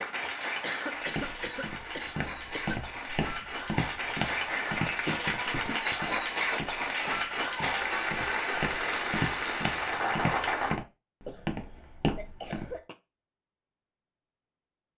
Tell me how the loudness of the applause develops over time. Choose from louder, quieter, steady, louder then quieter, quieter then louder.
louder.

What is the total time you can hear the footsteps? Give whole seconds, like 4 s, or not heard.
12 s.